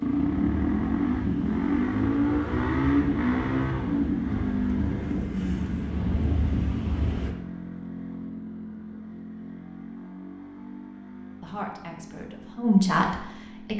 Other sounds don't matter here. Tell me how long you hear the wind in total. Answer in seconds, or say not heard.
7 s.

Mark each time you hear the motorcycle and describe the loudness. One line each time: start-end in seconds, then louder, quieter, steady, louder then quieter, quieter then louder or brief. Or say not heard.
0.0-13.7 quieter.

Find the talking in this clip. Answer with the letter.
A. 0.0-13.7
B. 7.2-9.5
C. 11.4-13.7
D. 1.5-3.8
C.